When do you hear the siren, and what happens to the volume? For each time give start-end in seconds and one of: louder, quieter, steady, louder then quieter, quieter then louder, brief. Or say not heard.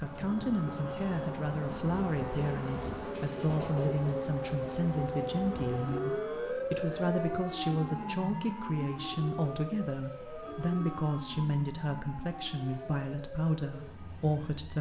0.0-14.7 louder then quieter.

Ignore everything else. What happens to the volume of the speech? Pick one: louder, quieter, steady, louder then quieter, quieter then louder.
steady.